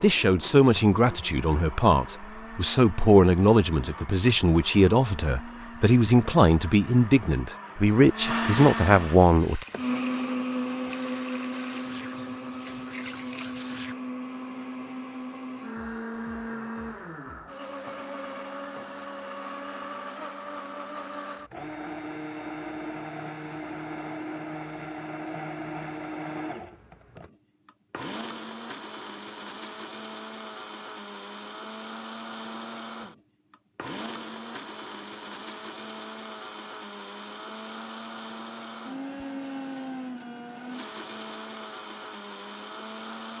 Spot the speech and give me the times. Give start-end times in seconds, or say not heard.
0.0-9.7.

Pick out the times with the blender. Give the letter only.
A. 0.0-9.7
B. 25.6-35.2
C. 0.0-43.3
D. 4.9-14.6
C.